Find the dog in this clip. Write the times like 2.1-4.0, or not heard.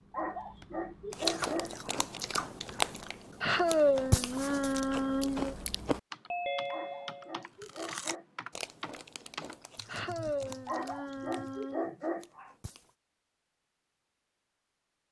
0.1-2.0, 6.7-8.2, 10.7-12.6.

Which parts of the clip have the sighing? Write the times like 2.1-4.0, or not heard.
3.4-5.5, 9.8-11.9.